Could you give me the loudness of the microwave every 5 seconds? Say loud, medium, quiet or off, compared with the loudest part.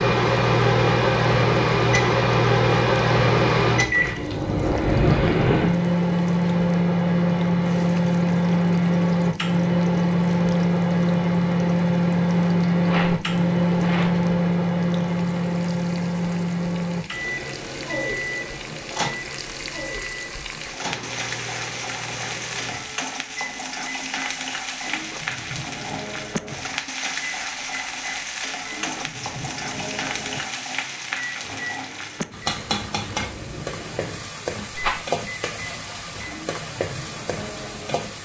loud, loud, loud, medium, quiet, quiet, quiet, quiet.